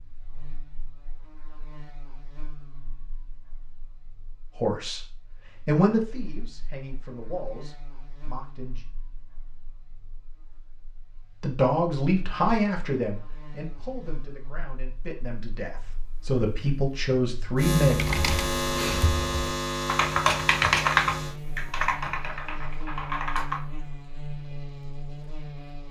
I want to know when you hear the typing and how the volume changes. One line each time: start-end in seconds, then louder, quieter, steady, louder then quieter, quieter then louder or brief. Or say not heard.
17.8-23.6 louder then quieter.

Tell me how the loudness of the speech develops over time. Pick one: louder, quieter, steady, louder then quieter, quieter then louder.
quieter then louder.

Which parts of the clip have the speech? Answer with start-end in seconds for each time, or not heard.
4.5-8.8, 11.4-18.1.